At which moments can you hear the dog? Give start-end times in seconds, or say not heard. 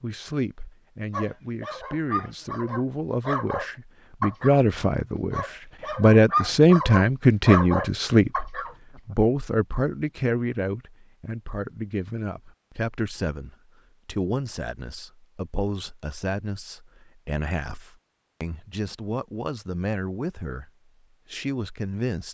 1.1-4.6, 5.3-8.8.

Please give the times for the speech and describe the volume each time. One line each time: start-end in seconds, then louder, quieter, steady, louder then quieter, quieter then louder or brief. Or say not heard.
0.0-20.7 louder then quieter
21.3-22.2 brief.